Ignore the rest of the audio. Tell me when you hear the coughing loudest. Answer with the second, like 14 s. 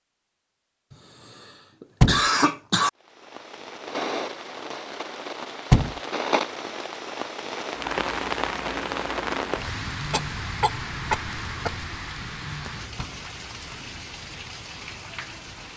2 s.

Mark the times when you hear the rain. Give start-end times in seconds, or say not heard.
3.0-15.7.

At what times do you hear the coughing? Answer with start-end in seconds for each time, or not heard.
1.8-2.9, 10.1-11.8.